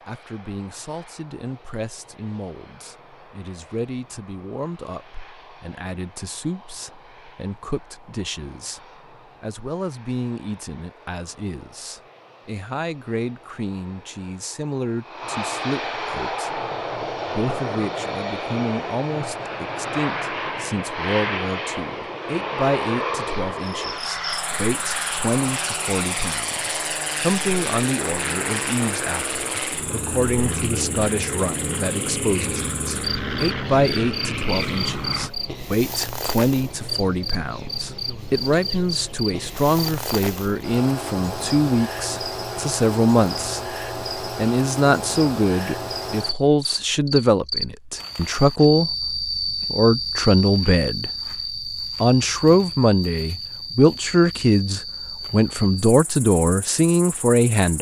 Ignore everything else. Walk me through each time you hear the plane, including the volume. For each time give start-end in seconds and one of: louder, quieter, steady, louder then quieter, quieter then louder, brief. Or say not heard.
0.0-35.3 louder.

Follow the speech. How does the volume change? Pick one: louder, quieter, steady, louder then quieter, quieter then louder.
louder.